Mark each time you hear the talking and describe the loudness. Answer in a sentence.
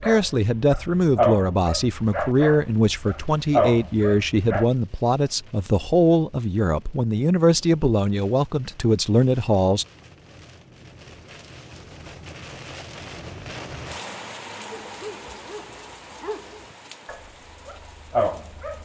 The talking can be heard from 0.0 to 9.8 s, at a steady volume.